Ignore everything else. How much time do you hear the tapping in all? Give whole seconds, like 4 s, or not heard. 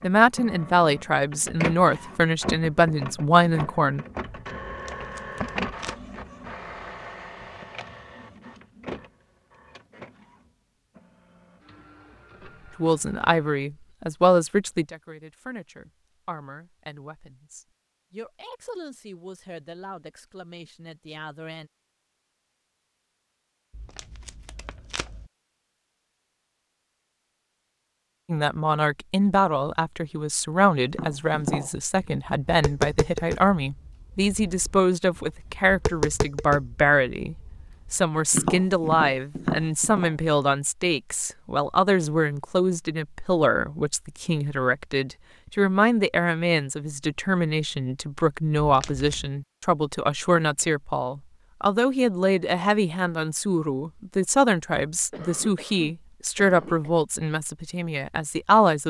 9 s.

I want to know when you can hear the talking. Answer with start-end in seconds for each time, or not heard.
0.0-4.0, 12.8-21.7, 28.2-58.8.